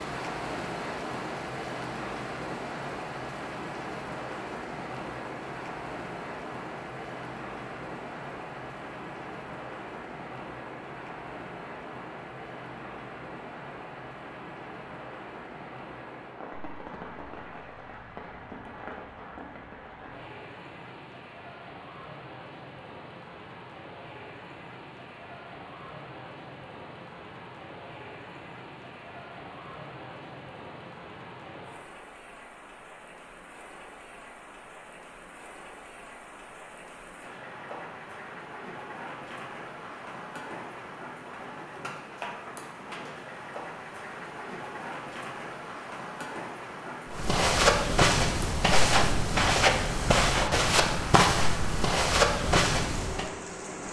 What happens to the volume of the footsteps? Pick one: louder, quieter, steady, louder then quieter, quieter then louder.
steady.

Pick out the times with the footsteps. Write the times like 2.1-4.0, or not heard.
47.1-53.3.